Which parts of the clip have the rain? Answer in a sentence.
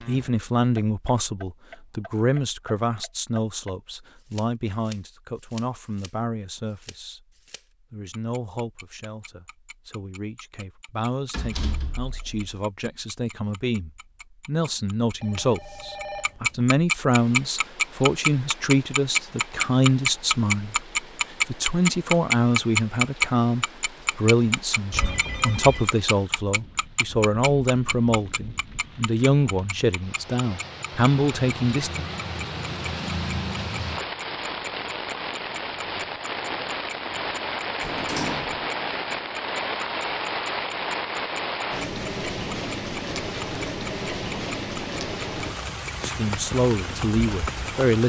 The rain can be heard from 17.1 to 48.0 s.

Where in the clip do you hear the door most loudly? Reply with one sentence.
The loudest moment of the door is at 38 seconds.